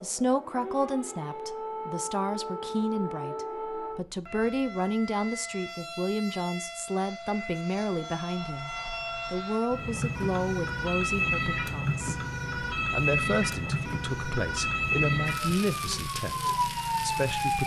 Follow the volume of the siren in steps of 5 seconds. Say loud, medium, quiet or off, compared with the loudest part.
medium, medium, loud, loud.